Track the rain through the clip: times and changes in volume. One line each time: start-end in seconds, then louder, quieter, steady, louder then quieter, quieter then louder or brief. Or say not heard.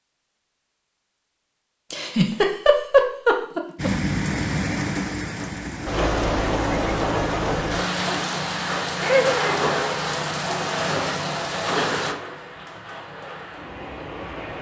3.8-14.5 quieter.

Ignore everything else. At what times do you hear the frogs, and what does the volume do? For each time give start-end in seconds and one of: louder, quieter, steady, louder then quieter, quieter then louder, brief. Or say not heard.
not heard.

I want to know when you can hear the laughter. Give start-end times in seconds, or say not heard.
1.9-3.9, 9.0-9.6.